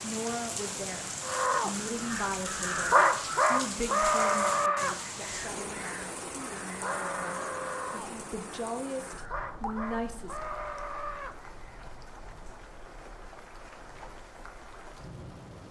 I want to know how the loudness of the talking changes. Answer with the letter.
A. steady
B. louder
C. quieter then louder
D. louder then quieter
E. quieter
C.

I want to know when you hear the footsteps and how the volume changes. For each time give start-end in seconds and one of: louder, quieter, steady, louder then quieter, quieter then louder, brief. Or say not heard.
not heard.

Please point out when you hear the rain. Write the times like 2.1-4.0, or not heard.
0.0-15.6.